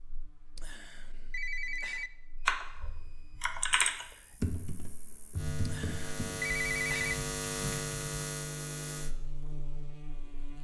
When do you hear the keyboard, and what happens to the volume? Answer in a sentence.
The keyboard can be heard from 2.5 to 8.3 s, getting quieter.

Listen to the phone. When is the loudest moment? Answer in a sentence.
The volume of the phone peaks at 7 seconds.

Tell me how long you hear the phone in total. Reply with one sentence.
You can hear the phone for 3 seconds altogether.